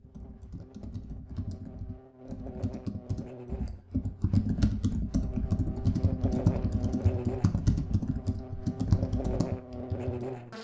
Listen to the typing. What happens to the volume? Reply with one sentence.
The volume of the typing goes up.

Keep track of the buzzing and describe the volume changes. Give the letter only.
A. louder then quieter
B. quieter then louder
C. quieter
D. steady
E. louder
E.